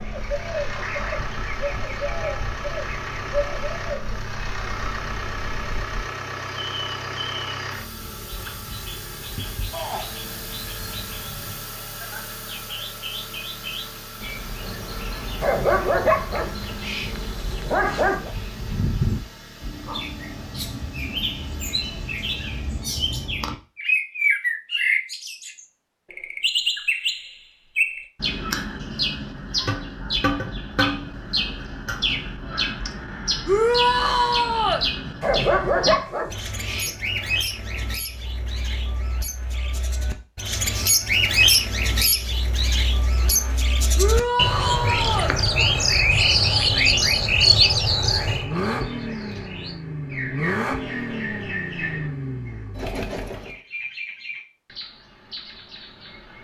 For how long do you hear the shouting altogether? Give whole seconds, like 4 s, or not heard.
3 s.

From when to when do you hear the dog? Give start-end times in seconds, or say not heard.
15.4-18.3, 35.2-37.0.